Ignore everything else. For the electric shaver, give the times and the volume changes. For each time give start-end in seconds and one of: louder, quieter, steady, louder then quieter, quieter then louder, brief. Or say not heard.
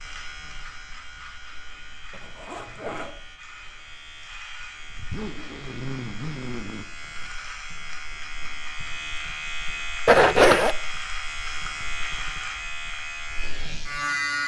0.0-14.4 louder.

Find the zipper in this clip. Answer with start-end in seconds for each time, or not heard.
2.1-3.1, 4.8-6.8, 10.1-10.8.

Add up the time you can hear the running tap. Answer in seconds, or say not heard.
not heard.